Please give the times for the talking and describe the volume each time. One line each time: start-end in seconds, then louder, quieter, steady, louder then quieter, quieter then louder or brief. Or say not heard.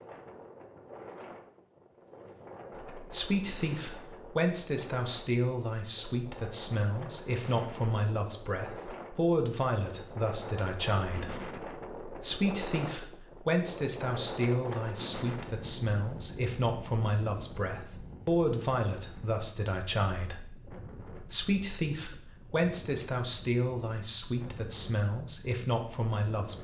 2.9-26.5 steady.